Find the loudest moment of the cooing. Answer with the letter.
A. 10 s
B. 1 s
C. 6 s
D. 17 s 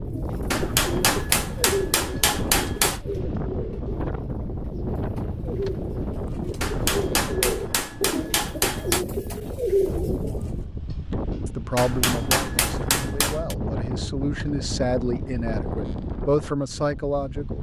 A.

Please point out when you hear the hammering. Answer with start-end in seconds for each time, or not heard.
0.5-3.0, 6.6-9.1, 11.8-13.6.